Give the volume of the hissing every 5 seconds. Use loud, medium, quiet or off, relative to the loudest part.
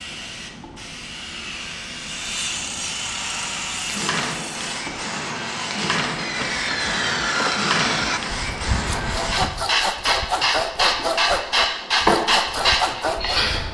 medium, medium, loud.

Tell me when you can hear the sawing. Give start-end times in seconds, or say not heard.
1.9-13.6.